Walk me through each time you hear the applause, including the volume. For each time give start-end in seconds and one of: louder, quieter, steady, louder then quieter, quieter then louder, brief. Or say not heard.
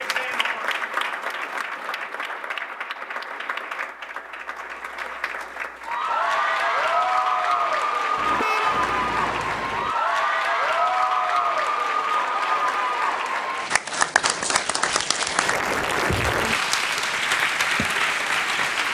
0.0-18.8 louder.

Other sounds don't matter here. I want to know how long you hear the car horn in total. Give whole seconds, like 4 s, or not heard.
2 s.